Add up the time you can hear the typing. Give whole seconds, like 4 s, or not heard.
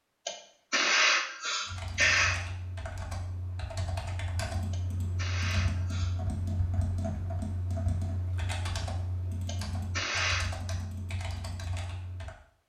11 s.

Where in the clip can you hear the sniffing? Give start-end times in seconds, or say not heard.
0.2-2.4, 4.7-6.2, 9.4-10.4.